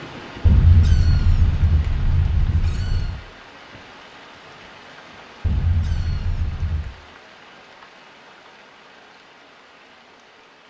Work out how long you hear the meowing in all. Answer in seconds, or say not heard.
4 s.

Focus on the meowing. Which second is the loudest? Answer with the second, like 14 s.
1 s.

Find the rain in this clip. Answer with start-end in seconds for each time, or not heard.
0.0-10.6.